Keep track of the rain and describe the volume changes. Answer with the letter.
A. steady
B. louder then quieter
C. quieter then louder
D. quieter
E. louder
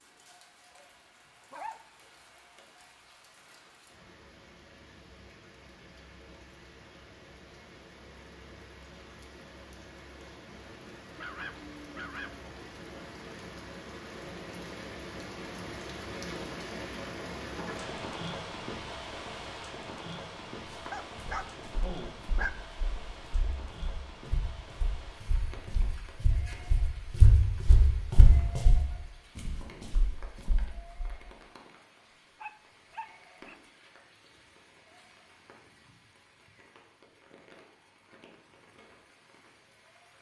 B.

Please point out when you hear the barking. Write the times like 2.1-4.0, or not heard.
0.7-1.9, 11.2-12.4, 20.9-22.5, 32.4-33.6.